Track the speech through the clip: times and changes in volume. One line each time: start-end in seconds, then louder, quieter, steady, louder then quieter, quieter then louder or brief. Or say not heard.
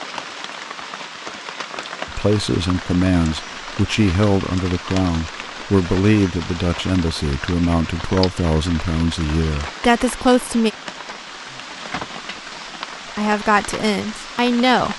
2.0-10.7 steady
13.2-14.9 brief.